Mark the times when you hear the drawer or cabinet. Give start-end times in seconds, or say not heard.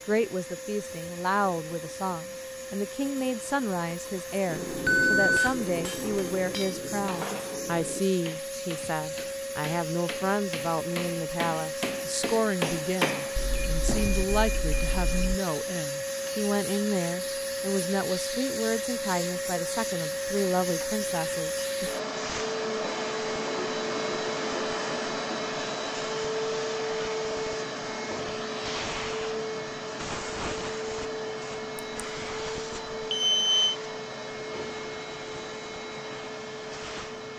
not heard.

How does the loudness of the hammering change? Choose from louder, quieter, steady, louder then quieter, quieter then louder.
quieter then louder.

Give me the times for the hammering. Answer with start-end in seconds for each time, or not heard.
4.5-14.2.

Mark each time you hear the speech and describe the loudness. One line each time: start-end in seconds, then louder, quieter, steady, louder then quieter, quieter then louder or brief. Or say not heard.
0.1-21.9 steady.